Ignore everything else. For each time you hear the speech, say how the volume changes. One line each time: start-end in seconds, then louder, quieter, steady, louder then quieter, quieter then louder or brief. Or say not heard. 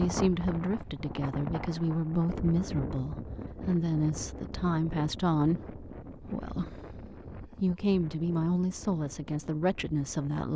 0.0-10.5 steady.